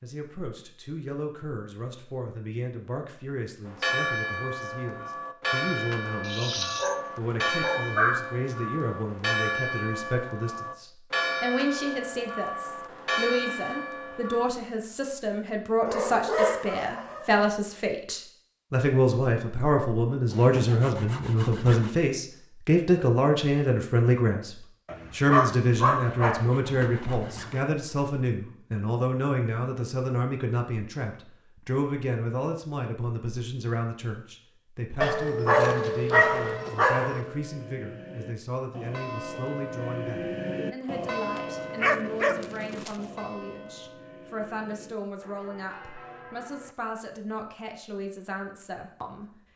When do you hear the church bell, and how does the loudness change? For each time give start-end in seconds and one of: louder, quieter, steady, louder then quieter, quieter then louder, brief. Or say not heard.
3.6-14.5 steady
36.4-46.8 louder then quieter.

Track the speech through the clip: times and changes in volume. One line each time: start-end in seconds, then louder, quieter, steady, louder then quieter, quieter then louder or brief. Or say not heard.
0.0-49.3 louder then quieter.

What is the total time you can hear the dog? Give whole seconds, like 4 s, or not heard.
10 s.